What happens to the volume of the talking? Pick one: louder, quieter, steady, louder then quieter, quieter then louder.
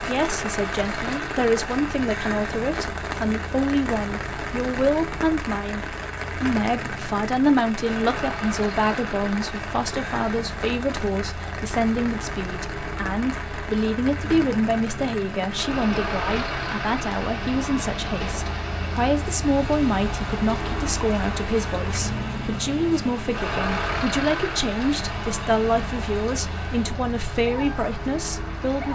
steady.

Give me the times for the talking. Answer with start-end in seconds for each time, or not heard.
0.1-28.9.